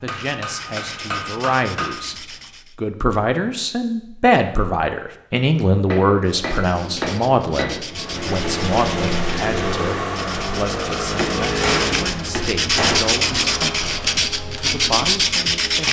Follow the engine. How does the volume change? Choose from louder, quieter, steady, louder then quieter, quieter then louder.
quieter.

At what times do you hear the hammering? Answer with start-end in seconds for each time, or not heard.
0.1-1.9, 5.8-7.8, 11.0-13.1.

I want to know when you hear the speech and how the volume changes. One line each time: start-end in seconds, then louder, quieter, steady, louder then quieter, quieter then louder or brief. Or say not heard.
0.0-2.1 brief
2.8-15.8 quieter.